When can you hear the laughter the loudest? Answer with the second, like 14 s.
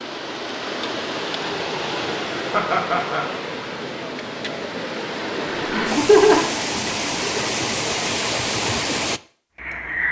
6 s.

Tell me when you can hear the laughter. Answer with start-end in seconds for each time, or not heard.
2.5-3.3, 5.5-6.5.